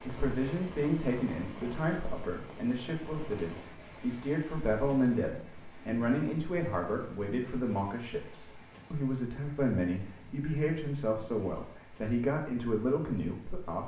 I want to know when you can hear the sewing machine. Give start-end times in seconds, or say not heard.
not heard.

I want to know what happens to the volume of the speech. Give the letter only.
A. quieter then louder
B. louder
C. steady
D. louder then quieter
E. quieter
C.